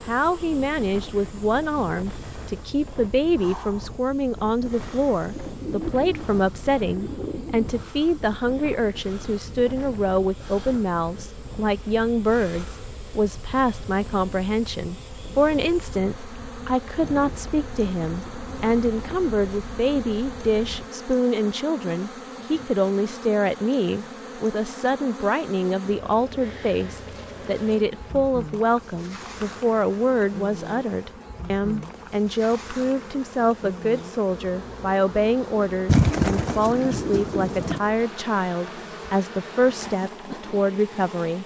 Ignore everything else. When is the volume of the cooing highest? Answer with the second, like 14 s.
36 s.